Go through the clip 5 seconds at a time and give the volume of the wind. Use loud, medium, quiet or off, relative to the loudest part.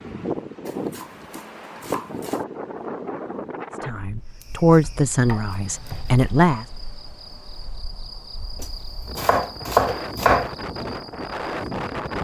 loud, medium, loud.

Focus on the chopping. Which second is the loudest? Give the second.
10 s.